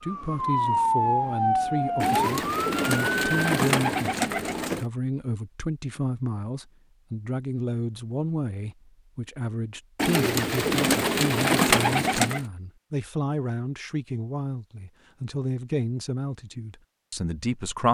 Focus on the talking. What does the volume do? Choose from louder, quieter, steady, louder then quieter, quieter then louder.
steady.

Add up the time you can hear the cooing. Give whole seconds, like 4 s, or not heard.
5 s.